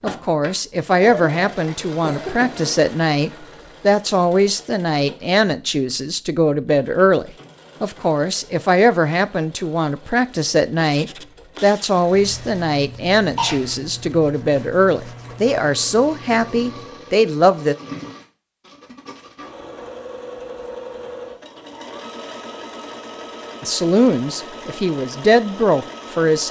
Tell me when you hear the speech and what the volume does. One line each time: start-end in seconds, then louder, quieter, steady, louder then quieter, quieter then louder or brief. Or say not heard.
0.0-17.8 steady
23.6-26.4 brief.